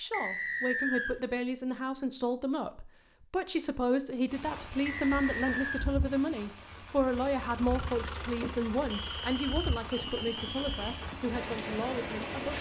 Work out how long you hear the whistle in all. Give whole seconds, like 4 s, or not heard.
4 s.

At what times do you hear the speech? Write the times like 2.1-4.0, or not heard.
0.0-12.5.